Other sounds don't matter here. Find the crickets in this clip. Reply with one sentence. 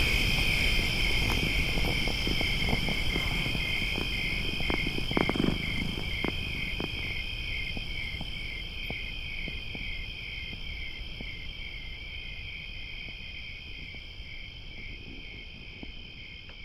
The crickets can be heard from 0.0 to 16.6 s.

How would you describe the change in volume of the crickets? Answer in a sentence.
The volume of the crickets goes down.